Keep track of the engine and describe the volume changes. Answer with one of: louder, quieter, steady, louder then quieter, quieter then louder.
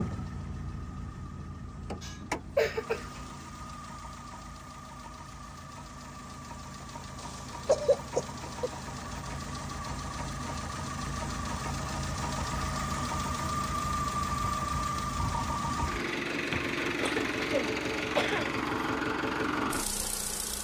louder.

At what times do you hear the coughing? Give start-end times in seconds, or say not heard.
2.0-3.2, 7.2-8.7, 16.5-18.5.